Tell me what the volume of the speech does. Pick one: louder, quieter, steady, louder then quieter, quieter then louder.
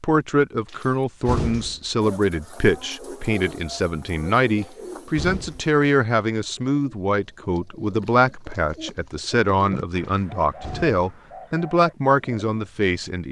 steady.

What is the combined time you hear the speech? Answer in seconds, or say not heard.
13 s.